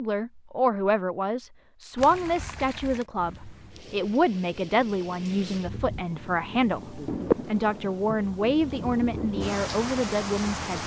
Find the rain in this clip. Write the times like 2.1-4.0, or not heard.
1.9-10.8.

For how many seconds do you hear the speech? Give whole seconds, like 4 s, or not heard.
11 s.